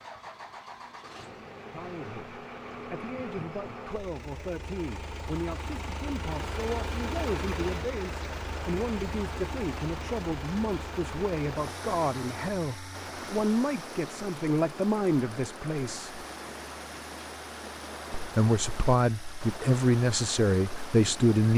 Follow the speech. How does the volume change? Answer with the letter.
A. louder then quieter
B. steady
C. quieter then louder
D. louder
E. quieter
D.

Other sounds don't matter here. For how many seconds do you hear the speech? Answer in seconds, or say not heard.
18 s.